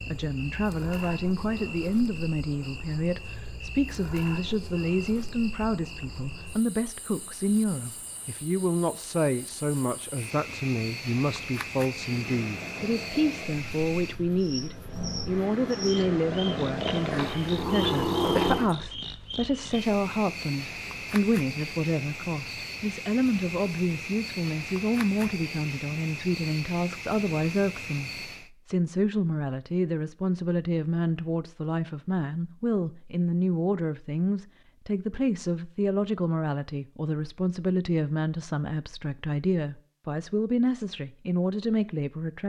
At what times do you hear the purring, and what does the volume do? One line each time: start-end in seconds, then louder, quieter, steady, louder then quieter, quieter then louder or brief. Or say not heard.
11.9-18.8 quieter then louder.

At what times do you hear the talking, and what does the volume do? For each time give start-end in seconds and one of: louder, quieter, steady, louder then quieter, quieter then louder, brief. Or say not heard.
0.0-42.4 steady.